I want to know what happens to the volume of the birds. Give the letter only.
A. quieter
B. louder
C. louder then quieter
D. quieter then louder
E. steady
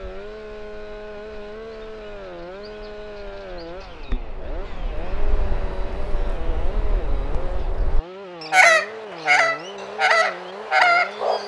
B.